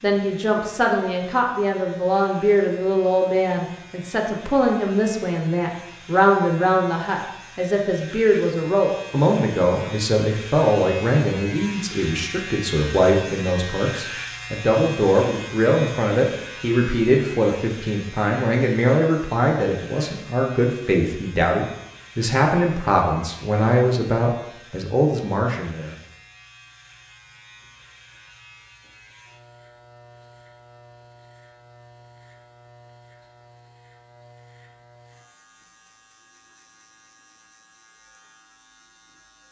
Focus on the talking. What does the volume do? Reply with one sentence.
The volume of the talking stays about the same.